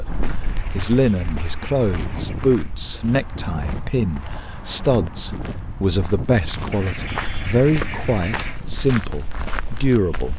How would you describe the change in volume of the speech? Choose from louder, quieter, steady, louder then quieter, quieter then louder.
steady.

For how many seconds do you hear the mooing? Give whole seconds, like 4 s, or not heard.
not heard.